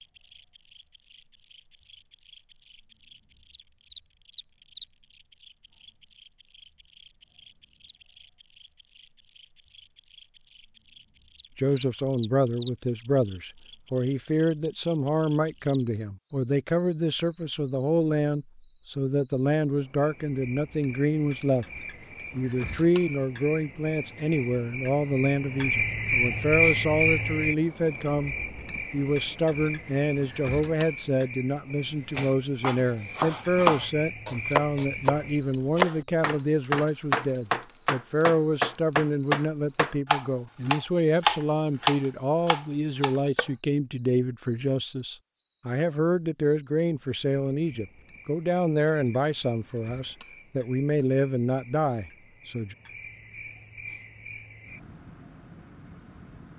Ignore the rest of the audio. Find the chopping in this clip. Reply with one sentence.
The chopping can be heard from 32.1 to 43.5 s.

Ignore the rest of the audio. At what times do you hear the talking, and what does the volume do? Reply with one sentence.
You can hear the talking from 11.6 to 21.6 s, at a steady volume; and from 22.3 to 52.8 s, at a steady volume.